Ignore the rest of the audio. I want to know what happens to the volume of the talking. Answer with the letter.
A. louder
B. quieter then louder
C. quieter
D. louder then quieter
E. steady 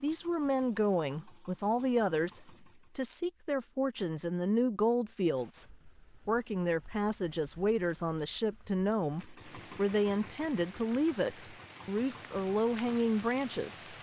E.